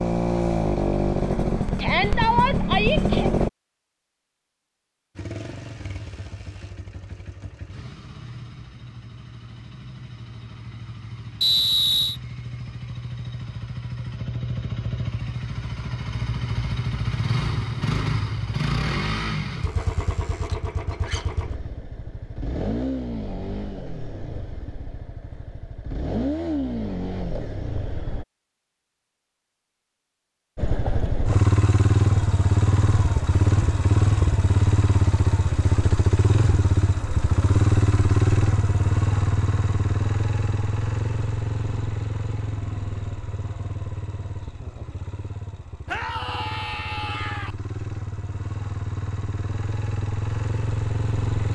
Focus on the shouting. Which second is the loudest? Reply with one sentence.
The loudest moment of the shouting is at 2 seconds.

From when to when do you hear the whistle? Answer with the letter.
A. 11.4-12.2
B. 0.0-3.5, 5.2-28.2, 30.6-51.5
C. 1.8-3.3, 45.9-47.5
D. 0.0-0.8
A.